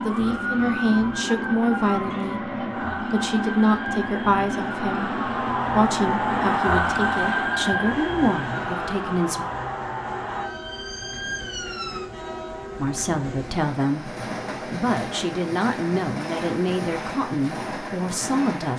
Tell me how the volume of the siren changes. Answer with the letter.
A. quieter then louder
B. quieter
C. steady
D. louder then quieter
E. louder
D.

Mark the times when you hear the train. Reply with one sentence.
You can hear the train from 0.0 to 18.7 s.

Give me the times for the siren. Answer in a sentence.
You can hear the siren from 0.0 to 12.1 s.